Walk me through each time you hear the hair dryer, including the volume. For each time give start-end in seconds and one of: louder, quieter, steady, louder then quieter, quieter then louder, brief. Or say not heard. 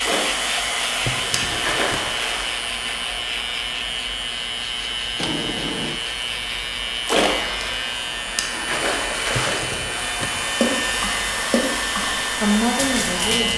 0.0-13.5 quieter then louder.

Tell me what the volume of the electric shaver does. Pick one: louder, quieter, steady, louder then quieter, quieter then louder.
steady.